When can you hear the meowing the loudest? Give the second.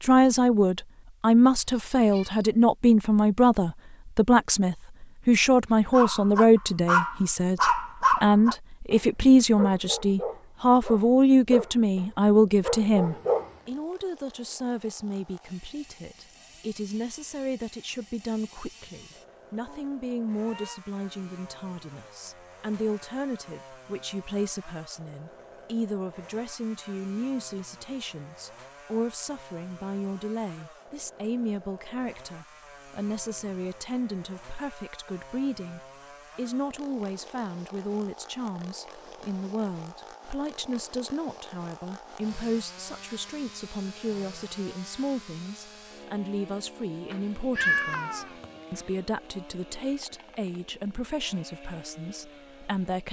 48 s.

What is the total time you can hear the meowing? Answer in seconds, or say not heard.
4 s.